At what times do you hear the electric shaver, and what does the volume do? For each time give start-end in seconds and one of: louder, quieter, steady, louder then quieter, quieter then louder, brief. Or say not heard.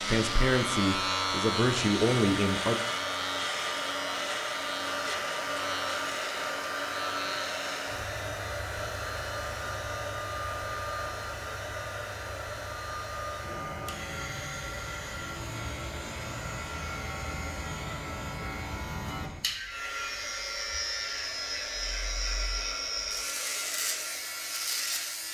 0.0-25.2 quieter then louder.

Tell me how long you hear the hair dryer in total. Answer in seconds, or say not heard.
25 s.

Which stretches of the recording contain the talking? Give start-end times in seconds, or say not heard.
0.0-2.8.